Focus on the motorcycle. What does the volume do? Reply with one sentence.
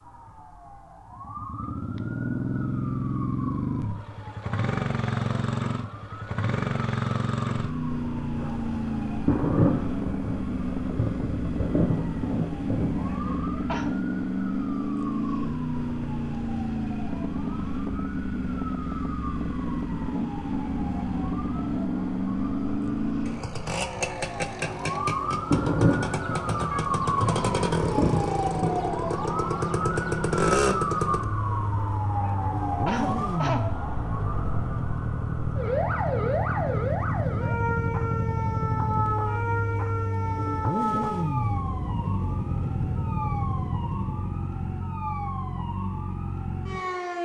The volume of the motorcycle stays about the same.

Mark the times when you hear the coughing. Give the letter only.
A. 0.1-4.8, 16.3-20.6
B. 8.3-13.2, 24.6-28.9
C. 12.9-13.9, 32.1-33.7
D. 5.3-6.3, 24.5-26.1
C.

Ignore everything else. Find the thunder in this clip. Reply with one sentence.
The thunder can be heard from 8.3 to 13.2 s and from 24.6 to 28.9 s.